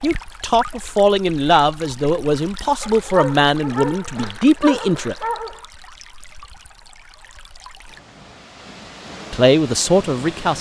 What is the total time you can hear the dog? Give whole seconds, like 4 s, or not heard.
3 s.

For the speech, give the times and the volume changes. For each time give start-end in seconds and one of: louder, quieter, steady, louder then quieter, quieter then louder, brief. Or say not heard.
0.0-5.2 steady
9.3-10.5 brief.